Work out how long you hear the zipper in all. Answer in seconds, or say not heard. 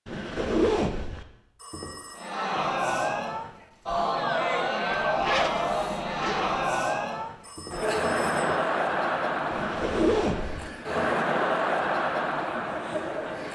4 s.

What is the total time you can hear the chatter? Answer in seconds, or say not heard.
11 s.